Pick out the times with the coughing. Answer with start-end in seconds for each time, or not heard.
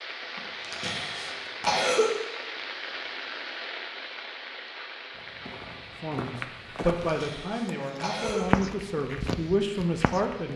0.3-2.1, 7.0-8.5.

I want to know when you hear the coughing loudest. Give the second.
2 s.